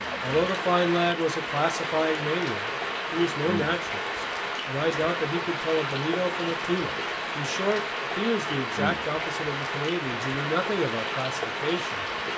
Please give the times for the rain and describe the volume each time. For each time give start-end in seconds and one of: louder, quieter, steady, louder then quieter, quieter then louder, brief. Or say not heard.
0.0-12.3 steady.